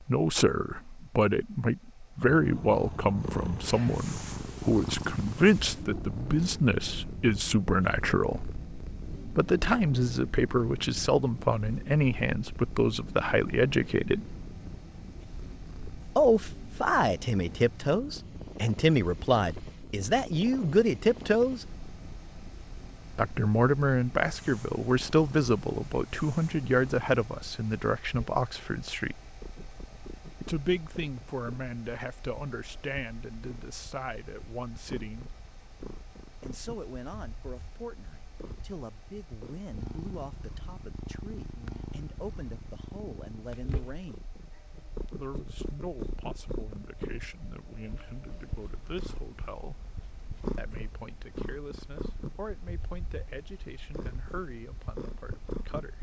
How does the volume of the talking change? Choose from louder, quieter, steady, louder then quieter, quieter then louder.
quieter.